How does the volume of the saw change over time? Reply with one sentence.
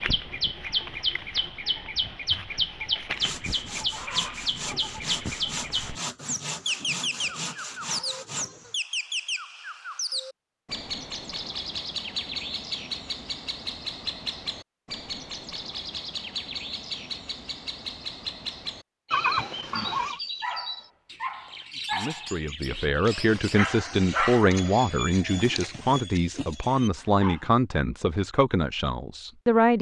The loudness of the saw stays about the same.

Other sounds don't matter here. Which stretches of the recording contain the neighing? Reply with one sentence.
The neighing can be heard from 19.1 to 20.2 s.